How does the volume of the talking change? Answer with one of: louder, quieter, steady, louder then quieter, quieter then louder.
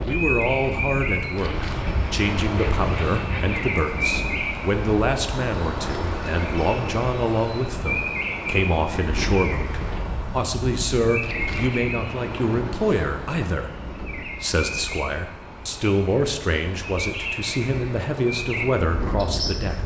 steady.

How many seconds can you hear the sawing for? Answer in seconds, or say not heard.
2 s.